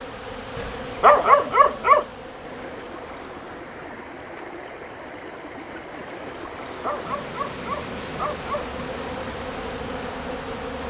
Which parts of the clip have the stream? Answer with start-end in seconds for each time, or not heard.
2.0-10.8.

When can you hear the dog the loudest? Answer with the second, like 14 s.
1 s.